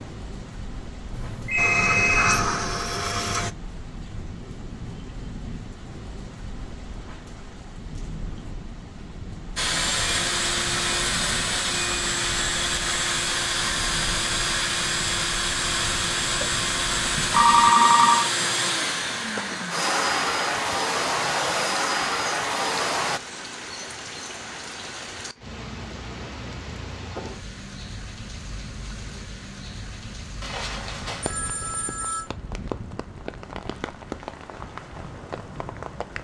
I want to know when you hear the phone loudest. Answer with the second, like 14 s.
18 s.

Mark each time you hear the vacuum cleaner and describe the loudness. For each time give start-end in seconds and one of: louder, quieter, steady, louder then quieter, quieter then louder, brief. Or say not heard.
1.6-3.5 brief
9.6-23.2 steady.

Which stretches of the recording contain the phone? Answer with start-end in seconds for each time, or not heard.
1.1-2.5, 17.1-18.2, 30.4-32.2.